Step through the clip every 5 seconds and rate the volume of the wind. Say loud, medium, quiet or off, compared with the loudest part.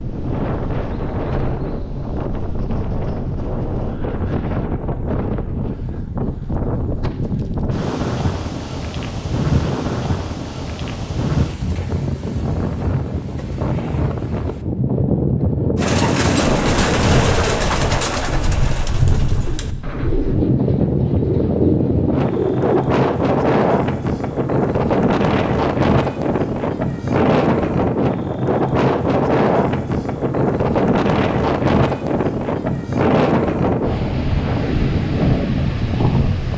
medium, medium, medium, loud, loud, loud, loud, loud.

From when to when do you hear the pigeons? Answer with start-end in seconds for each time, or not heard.
15.8-22.8.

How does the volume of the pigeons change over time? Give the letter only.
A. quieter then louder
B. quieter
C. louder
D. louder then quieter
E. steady
A.